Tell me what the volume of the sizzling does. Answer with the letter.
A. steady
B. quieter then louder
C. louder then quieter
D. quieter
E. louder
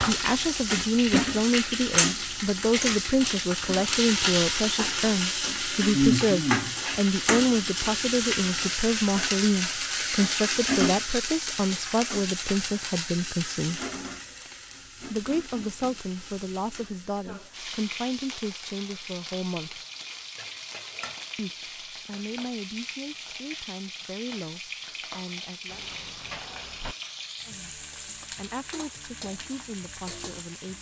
D.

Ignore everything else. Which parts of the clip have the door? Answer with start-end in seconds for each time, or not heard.
25.6-26.9.